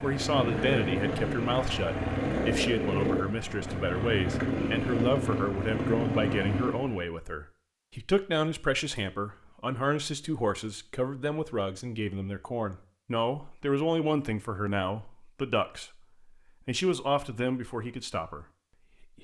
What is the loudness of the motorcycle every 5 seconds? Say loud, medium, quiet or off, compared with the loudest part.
loud, loud, off, off.